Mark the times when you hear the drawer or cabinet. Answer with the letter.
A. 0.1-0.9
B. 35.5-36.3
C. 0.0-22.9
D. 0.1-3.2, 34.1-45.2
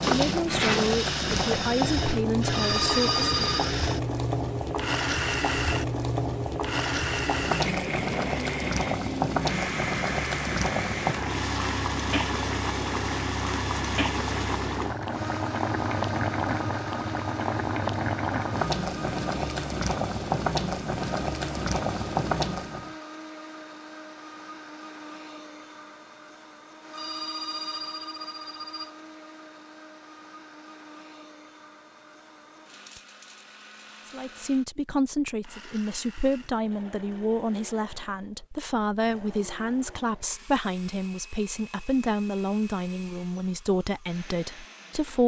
A.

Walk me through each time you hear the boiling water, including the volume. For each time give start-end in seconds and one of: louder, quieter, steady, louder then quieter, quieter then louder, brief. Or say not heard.
0.0-22.9 steady.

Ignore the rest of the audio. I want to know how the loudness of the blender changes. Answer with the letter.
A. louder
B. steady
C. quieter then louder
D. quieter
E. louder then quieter
D.